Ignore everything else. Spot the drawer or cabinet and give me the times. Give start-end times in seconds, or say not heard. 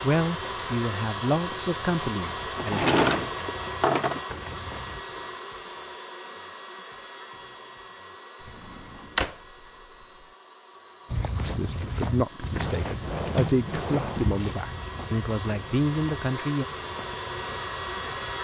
2.5-4.2, 8.4-9.3, 12.6-14.4.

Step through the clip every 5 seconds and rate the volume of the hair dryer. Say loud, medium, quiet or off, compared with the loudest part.
loud, medium, medium, loud.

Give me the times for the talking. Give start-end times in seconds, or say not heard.
0.0-2.9, 11.4-16.6.